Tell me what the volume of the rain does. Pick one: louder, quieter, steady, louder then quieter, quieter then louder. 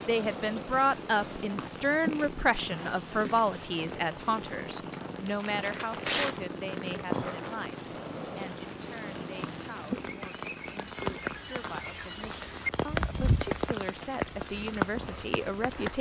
louder.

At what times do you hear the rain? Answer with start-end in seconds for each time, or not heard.
0.0-15.9.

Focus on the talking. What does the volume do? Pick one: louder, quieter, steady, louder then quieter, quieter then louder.
quieter then louder.